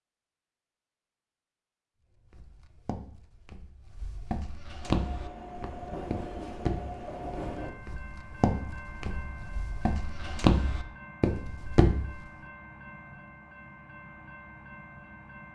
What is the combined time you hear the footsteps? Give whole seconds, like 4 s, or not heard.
10 s.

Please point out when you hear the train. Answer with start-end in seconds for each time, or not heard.
4.8-15.4.